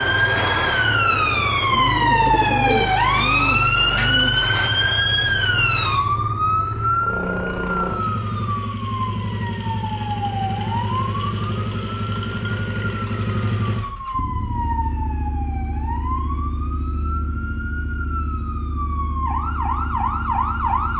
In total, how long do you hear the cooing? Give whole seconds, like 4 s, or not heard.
3 s.